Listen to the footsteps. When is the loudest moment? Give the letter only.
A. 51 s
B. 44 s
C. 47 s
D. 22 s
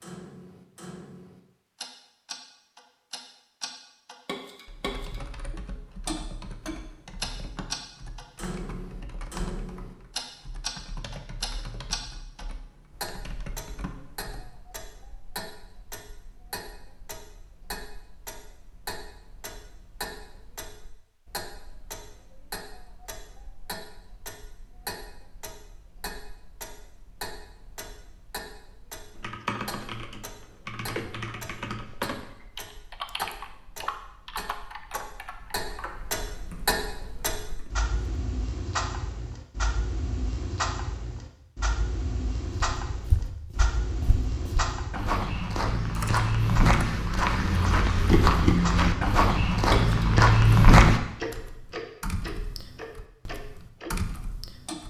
A.